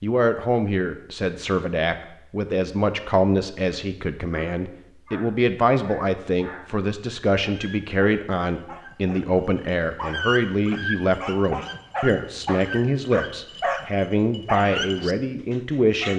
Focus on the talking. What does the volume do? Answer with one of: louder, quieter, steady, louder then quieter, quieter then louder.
steady.